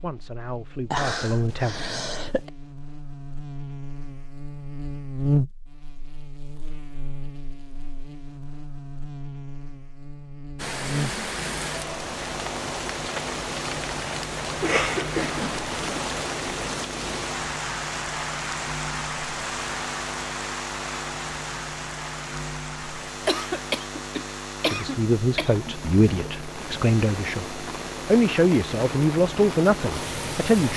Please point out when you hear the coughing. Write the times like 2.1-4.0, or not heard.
0.9-2.5, 14.6-16.0, 23.2-25.7.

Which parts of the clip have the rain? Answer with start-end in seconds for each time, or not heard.
10.6-30.7.